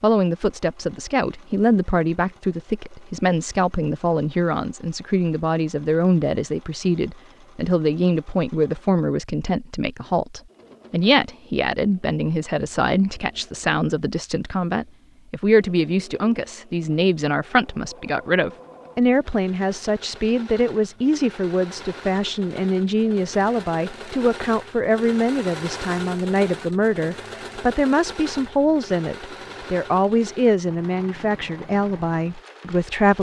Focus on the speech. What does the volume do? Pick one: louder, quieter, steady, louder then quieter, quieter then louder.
steady.